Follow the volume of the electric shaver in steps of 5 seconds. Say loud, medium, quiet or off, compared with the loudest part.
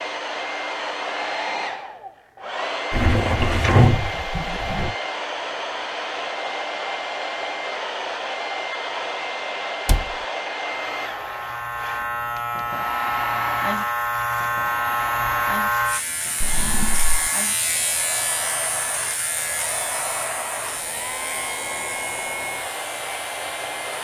off, off, loud, loud, medium.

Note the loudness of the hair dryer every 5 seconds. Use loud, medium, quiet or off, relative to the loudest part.
loud, loud, loud, medium, loud.